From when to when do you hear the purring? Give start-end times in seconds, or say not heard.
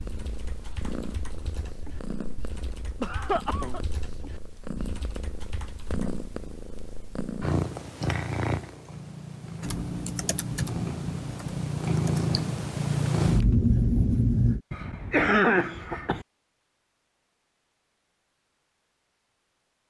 0.0-14.6.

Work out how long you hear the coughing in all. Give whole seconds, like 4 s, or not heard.
2 s.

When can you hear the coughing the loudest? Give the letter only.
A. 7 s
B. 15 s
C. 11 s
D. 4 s
B.